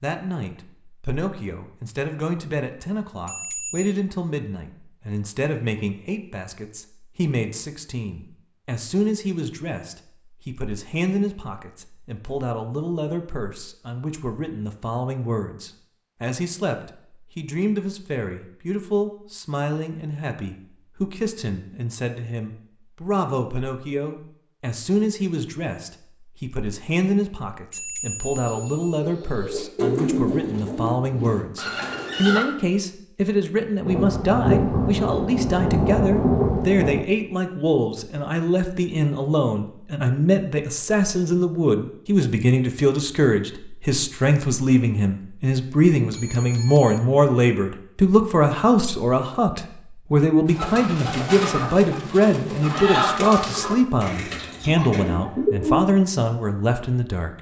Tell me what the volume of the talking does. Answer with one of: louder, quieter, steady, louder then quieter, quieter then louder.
louder.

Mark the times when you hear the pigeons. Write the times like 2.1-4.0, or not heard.
28.4-32.5, 50.5-55.9.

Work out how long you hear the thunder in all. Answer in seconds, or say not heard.
3 s.